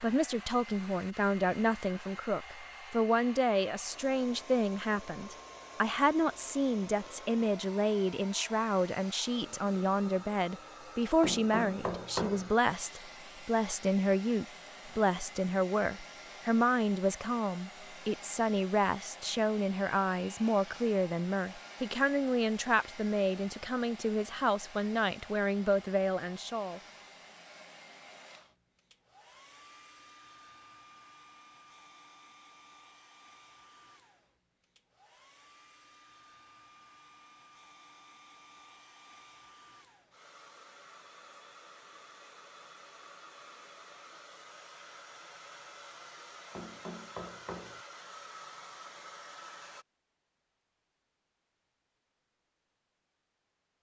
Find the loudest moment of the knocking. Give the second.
12 s.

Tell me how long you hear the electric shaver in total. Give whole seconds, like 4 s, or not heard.
not heard.